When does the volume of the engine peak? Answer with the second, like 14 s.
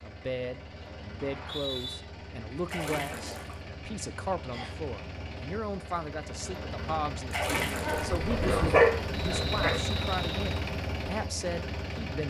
10 s.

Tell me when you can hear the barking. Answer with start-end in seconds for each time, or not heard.
7.8-9.8.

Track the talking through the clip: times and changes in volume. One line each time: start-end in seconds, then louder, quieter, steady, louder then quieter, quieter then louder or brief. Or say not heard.
0.0-12.2 steady.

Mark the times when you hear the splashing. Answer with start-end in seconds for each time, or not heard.
2.6-3.6, 7.3-8.2.